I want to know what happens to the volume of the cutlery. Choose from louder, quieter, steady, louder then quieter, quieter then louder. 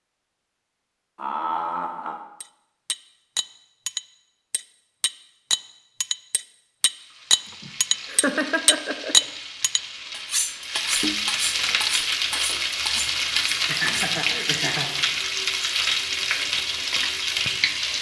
louder then quieter.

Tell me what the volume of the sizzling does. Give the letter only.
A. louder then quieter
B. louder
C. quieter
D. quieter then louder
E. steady
B.